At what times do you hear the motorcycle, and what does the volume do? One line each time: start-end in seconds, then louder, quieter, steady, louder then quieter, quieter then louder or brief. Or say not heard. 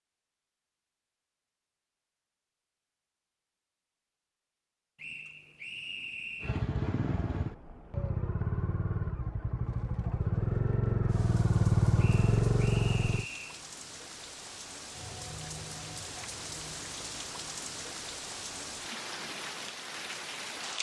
6.4-13.2 louder.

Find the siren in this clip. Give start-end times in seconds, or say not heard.
not heard.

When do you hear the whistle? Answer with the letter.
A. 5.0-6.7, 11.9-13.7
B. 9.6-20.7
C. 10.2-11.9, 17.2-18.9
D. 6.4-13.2
A.